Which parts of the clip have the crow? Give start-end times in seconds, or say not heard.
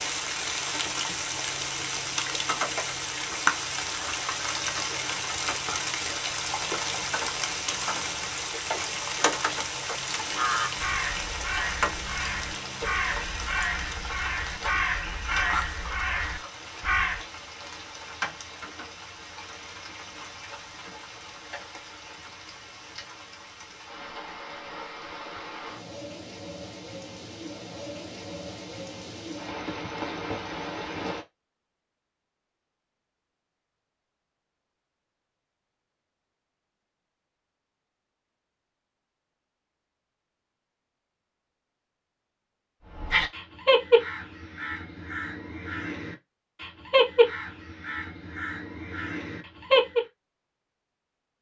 10.3-17.2, 43.0-50.0.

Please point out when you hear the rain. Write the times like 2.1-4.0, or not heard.
0.0-31.2.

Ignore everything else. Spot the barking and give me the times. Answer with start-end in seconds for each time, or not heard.
not heard.